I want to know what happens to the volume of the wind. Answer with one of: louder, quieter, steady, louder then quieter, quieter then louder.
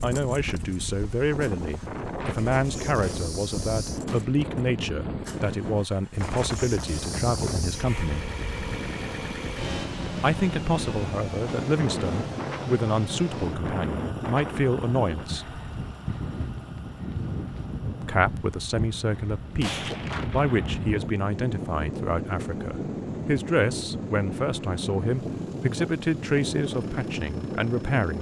steady.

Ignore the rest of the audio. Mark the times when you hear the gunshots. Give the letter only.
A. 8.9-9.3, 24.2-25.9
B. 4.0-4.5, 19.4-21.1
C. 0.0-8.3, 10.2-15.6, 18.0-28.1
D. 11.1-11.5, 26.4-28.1
B.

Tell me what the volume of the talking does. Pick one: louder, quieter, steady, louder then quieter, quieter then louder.
steady.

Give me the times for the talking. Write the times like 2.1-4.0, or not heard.
0.0-8.3, 10.2-15.6, 18.0-28.1.